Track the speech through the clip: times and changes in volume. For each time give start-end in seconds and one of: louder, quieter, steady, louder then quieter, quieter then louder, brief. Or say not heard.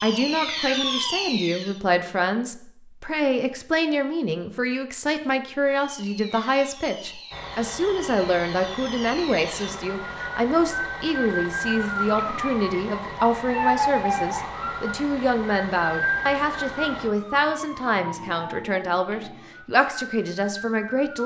0.0-21.2 steady.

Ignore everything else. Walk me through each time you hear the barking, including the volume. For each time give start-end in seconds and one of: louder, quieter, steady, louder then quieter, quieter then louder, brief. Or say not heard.
not heard.